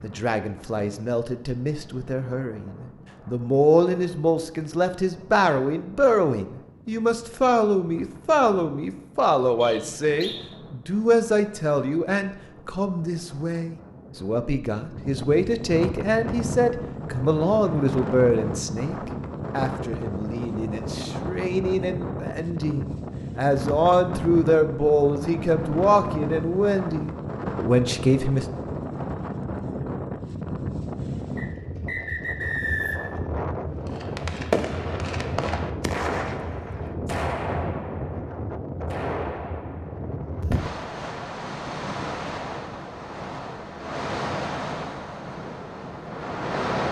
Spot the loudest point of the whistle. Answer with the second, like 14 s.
33 s.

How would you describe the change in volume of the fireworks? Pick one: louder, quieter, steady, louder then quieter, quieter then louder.
quieter.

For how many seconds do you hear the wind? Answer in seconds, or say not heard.
47 s.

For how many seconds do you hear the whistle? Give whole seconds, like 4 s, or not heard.
3 s.